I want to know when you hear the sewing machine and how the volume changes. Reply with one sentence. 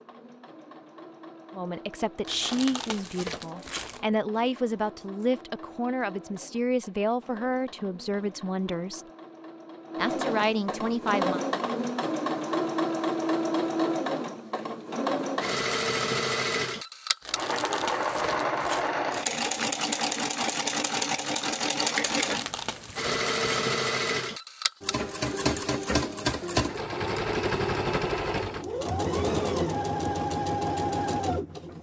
The sewing machine can be heard from 0.0 to 31.7 s, getting louder.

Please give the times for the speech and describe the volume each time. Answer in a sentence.
The speech can be heard from 1.6 to 9.0 s, at a steady volume; and briefly from 9.9 to 11.4 s.